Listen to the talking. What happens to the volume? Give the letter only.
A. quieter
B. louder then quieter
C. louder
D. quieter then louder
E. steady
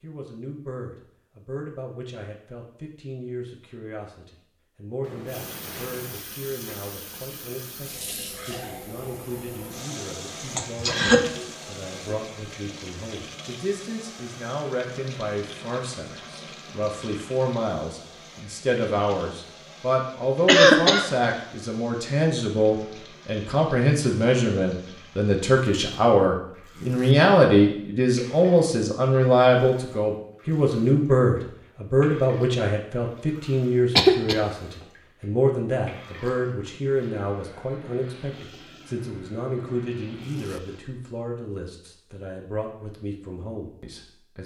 B.